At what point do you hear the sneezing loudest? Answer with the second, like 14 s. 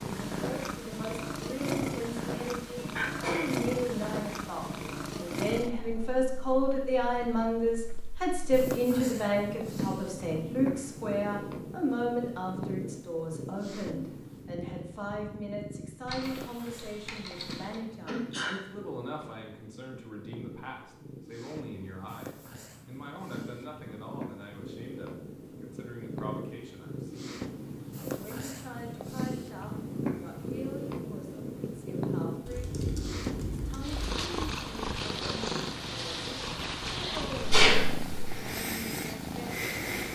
38 s.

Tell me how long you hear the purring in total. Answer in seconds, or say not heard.
40 s.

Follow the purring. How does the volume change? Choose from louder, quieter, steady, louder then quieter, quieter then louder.
quieter then louder.